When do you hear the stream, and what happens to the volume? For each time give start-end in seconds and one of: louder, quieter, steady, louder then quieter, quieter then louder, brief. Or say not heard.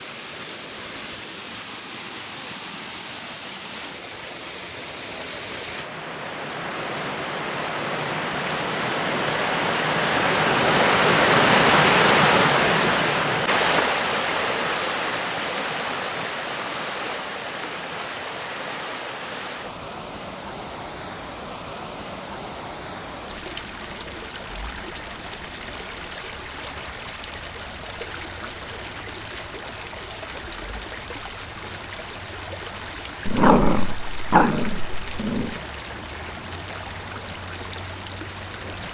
0.0-38.8 louder then quieter.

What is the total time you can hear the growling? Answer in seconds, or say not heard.
2 s.